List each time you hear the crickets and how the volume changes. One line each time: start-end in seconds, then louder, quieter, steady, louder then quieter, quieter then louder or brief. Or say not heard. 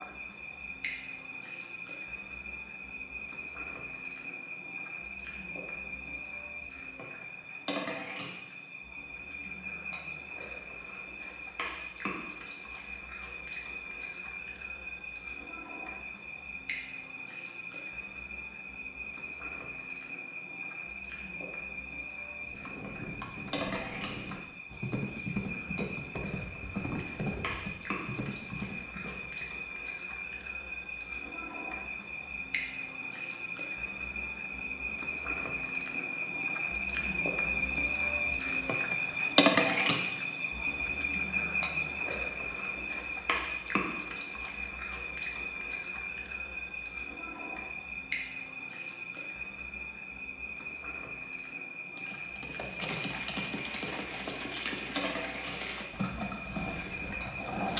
0.0-57.5 louder then quieter.